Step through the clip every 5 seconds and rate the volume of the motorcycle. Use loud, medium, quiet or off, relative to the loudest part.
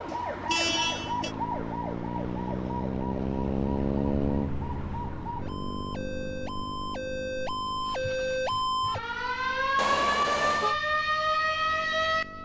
loud, medium, quiet.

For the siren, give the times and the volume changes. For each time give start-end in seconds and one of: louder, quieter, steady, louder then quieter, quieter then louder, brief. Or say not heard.
0.0-12.4 quieter then louder.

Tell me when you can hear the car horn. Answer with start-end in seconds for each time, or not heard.
0.1-1.4, 9.8-10.8.